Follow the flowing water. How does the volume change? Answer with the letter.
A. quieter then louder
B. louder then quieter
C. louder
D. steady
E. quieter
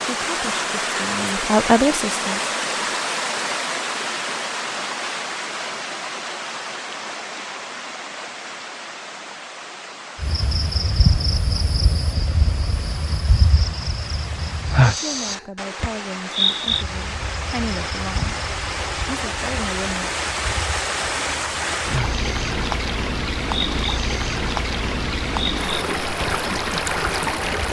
A.